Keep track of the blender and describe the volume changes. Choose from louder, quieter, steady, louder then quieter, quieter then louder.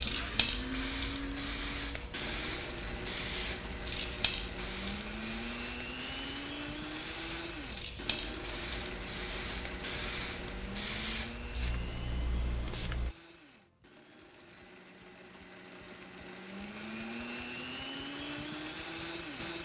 quieter then louder.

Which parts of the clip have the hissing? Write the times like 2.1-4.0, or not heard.
0.0-13.2.